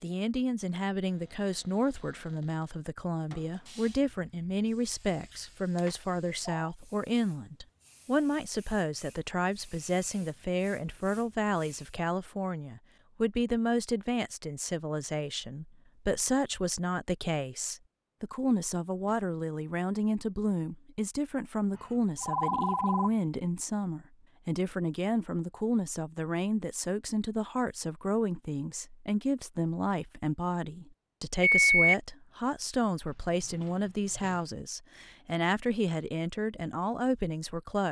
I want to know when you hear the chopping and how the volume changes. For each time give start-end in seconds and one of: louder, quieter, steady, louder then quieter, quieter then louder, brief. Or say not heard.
not heard.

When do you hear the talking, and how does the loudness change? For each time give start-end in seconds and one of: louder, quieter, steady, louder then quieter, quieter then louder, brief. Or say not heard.
0.0-37.8 steady.